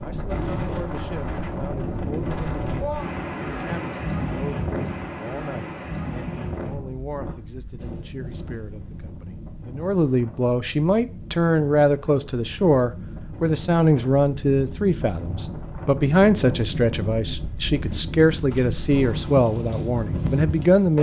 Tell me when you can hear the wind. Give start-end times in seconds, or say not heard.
0.0-20.9.